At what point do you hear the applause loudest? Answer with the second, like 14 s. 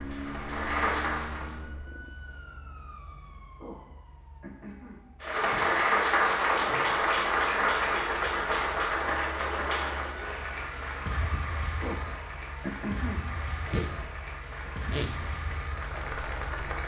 6 s.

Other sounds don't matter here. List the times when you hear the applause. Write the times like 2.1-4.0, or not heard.
0.0-1.7, 5.2-16.8.